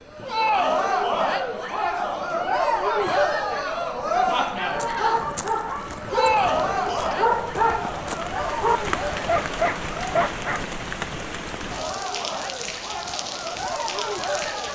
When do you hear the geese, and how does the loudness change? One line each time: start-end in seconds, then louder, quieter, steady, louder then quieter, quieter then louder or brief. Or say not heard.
not heard.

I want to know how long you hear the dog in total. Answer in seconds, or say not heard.
6 s.